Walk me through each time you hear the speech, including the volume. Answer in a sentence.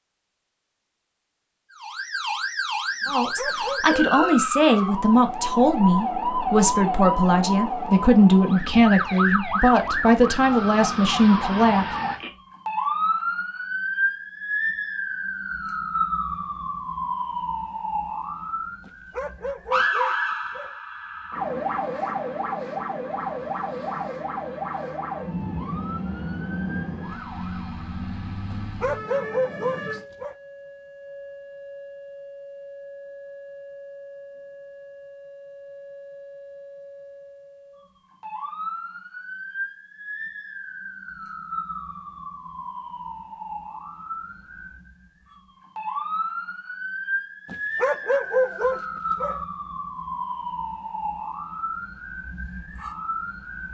The speech can be heard from 3.0 to 11.9 s, at a steady volume.